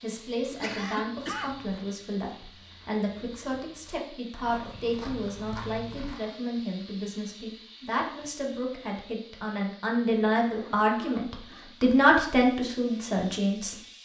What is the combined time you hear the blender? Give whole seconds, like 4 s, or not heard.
not heard.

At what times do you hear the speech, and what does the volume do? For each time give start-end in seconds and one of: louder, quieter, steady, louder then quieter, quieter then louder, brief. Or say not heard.
0.0-13.8 louder.